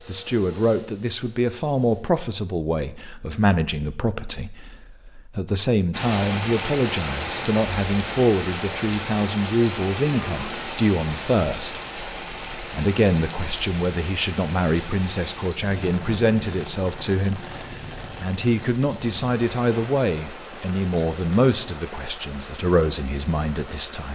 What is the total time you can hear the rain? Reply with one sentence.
The rain can be heard for 18 seconds in total.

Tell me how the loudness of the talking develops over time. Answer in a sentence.
The volume of the talking stays about the same.